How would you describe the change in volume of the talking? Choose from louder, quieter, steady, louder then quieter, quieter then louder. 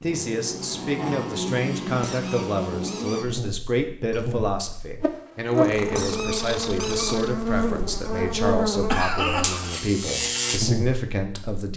steady.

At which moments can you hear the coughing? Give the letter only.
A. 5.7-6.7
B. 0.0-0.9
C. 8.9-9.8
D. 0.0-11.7
C.